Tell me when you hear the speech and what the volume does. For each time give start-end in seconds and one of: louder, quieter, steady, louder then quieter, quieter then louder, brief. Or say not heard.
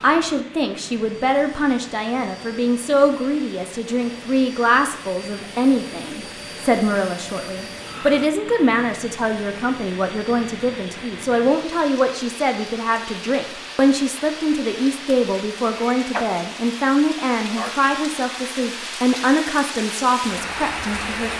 0.0-21.3 steady.